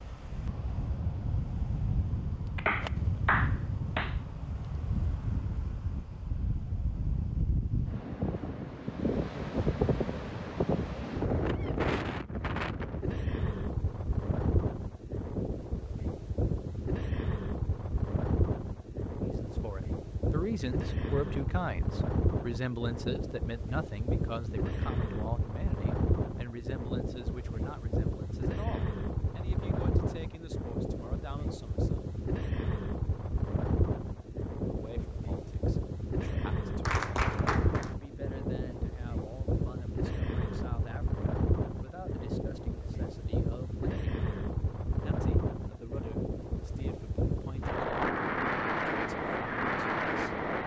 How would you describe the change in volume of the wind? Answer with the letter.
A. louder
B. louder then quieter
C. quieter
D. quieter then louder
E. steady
E.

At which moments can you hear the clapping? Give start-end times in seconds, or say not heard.
2.5-4.2, 36.9-38.0.